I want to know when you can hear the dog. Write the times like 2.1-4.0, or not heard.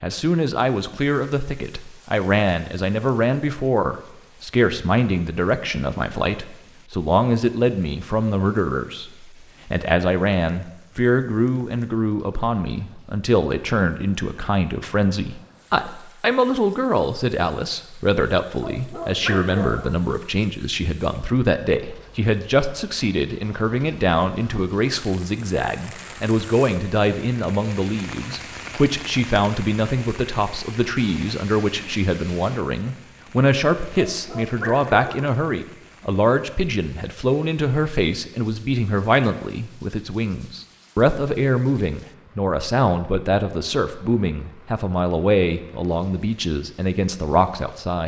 18.6-20.0, 34.0-35.3.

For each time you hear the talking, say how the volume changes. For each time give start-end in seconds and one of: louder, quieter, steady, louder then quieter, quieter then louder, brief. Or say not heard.
0.0-48.0 steady.